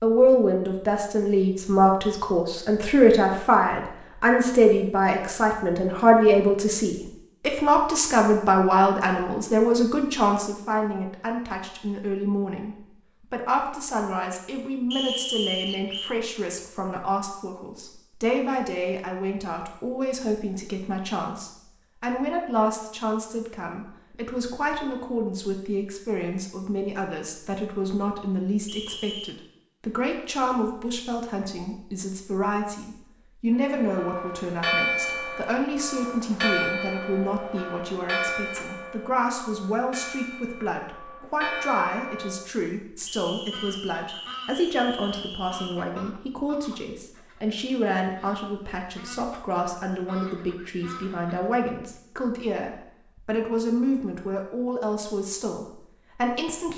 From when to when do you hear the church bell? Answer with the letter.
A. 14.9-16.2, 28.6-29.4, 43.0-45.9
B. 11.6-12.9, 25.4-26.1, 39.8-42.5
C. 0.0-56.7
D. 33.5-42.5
D.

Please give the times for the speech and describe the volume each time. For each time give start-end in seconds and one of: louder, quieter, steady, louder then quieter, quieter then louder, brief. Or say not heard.
0.0-56.7 quieter.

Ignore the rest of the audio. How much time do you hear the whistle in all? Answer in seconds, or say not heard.
5 s.